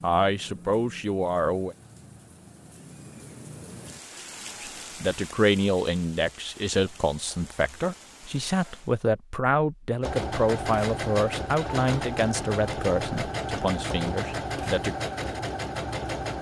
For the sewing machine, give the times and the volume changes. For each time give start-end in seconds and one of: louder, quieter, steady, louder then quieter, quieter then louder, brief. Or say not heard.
10.0-16.3 steady.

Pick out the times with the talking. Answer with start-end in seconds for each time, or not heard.
0.0-1.8, 4.6-14.9.